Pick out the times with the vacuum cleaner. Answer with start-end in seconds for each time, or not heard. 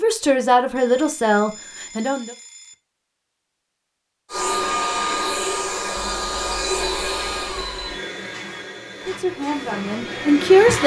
4.3-10.8.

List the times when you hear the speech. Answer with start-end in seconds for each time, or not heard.
0.0-2.4, 9.1-10.8.